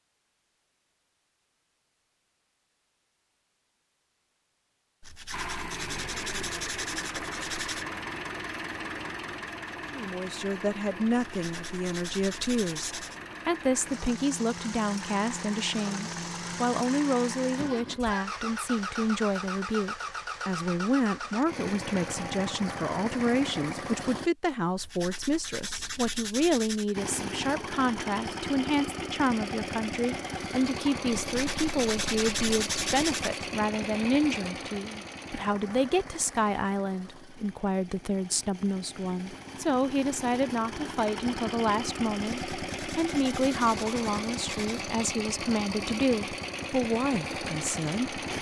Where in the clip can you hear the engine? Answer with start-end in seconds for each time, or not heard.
5.3-24.3, 26.9-48.3.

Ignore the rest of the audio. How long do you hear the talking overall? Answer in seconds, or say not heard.
38 s.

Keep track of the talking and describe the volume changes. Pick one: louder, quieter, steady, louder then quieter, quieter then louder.
steady.